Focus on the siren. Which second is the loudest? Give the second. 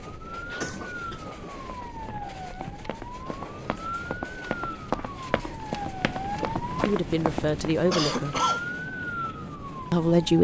9 s.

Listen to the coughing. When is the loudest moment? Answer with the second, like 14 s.
8 s.